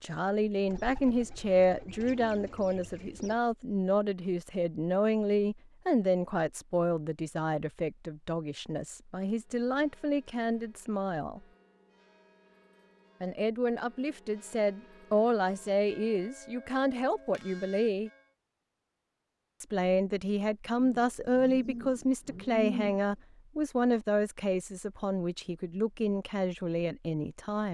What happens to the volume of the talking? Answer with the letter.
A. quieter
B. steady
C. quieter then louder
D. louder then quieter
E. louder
B.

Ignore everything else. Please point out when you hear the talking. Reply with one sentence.
You can hear the talking from 0.0 to 11.4 s, from 13.2 to 18.1 s and from 19.6 to 27.6 s.